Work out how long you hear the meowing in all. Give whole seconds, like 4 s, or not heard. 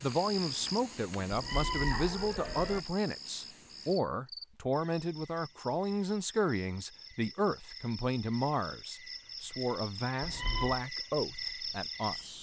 2 s.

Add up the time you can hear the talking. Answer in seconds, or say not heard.
12 s.